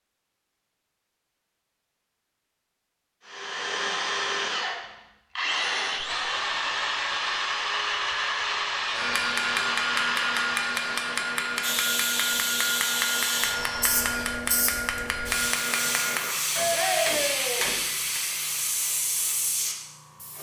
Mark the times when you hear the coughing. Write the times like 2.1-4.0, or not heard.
not heard.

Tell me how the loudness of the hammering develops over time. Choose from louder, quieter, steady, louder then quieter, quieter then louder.
steady.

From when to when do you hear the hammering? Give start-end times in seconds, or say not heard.
8.9-18.2.